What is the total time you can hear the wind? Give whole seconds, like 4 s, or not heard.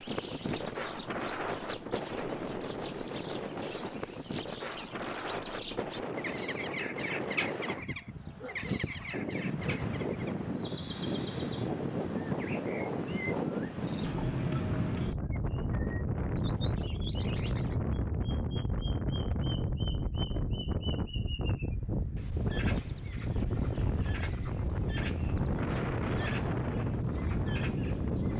28 s.